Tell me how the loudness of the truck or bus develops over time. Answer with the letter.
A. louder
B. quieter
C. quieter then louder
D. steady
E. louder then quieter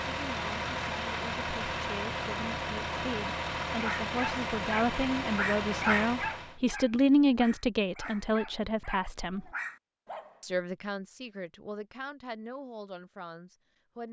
D.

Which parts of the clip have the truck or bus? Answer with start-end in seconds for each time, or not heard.
0.0-6.6.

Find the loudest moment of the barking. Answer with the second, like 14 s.
6 s.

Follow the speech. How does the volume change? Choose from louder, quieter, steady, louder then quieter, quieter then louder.
louder then quieter.